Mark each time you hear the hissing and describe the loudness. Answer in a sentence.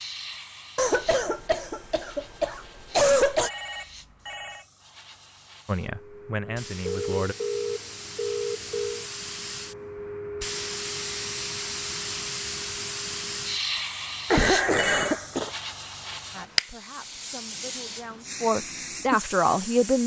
You can hear the hissing from 0.0 to 20.0 s, getting louder.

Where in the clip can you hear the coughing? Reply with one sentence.
You can hear the coughing from 0.8 to 3.5 s and from 14.3 to 15.5 s.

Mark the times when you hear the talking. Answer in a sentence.
You can hear the talking from 5.7 to 7.3 s and from 16.3 to 20.0 s.